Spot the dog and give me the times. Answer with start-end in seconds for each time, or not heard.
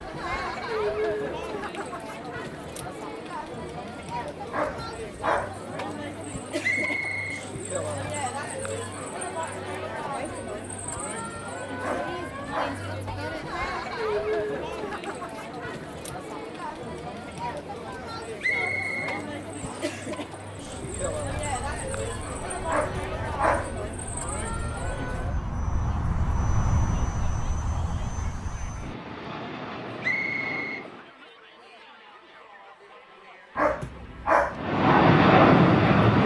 4.5-5.6, 11.8-12.9, 22.6-23.8, 33.5-34.6.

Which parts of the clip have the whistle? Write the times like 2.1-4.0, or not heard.
6.6-8.0, 18.4-20.0, 30.0-30.9.